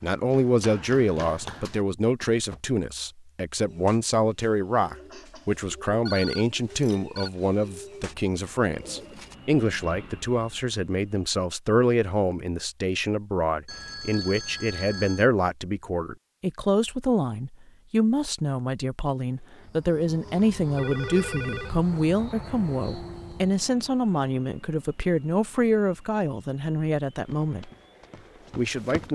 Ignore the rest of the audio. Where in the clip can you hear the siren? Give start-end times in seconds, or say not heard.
not heard.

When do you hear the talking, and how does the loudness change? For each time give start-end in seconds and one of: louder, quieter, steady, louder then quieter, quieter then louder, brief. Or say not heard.
0.0-27.7 steady
28.6-29.1 brief.